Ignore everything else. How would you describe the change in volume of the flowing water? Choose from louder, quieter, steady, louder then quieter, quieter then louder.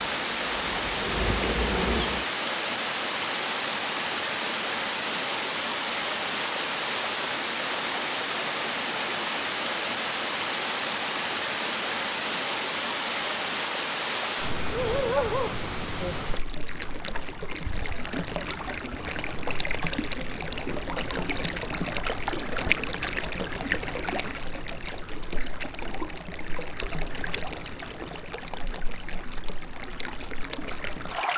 quieter.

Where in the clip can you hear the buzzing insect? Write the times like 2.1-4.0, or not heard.
0.0-2.2.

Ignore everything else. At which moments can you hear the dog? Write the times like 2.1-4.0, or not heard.
14.7-16.1.